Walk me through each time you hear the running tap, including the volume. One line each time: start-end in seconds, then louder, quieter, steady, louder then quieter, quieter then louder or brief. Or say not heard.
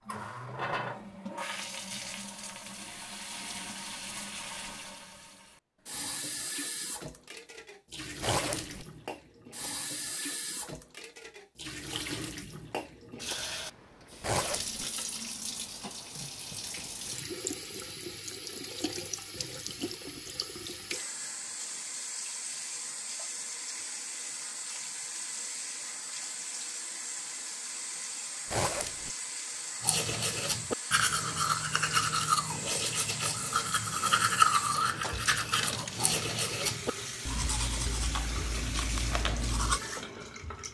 0.0-40.6 steady.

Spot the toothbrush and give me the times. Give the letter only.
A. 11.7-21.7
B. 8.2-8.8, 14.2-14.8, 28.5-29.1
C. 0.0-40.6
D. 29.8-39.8
D.